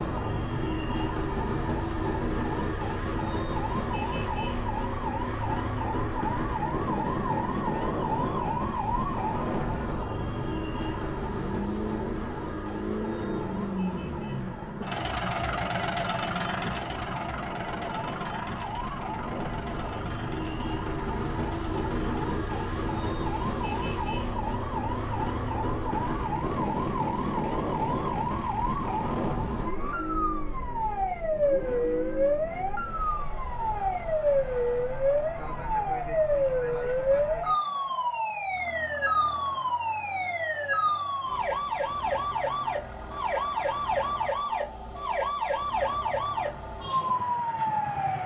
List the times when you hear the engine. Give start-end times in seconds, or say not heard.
0.0-48.2.